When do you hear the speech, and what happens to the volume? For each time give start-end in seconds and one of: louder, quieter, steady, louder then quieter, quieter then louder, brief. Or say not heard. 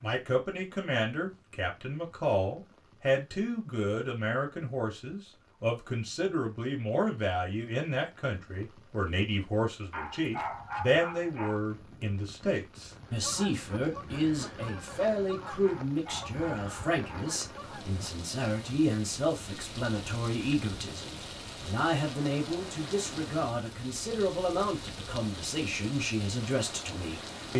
0.0-27.5 steady.